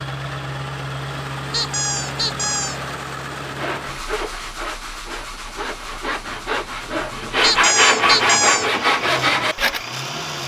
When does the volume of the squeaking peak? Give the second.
8 s.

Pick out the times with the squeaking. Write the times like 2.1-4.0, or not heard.
1.5-2.8, 7.4-8.7.